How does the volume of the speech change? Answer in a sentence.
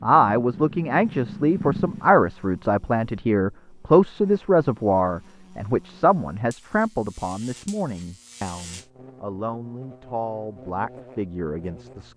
The loudness of the speech goes down.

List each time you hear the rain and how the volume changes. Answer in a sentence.
The rain can't be heard in this clip.